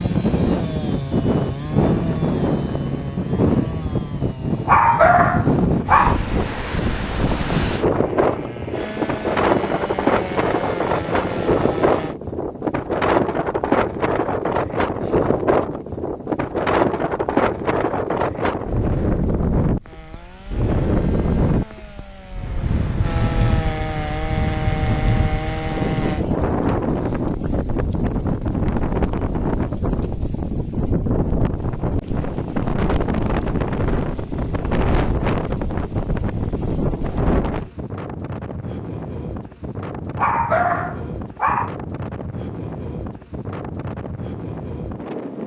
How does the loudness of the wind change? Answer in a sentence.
The loudness of the wind goes down.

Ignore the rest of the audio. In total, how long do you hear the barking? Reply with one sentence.
The barking can be heard for 3 seconds in total.